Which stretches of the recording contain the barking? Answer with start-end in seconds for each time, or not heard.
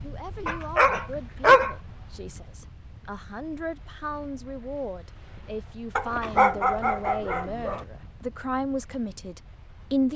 0.5-1.8, 6.0-7.8.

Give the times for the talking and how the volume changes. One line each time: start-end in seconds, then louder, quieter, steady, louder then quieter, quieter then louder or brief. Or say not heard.
0.0-10.1 louder.